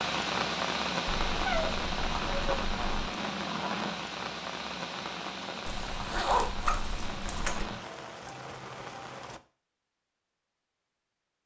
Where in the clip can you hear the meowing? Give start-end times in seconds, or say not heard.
1.1-3.1.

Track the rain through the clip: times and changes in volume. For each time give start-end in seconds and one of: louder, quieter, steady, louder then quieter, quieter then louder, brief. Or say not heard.
0.0-9.4 quieter.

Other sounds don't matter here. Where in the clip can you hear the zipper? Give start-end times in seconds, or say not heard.
5.7-7.7.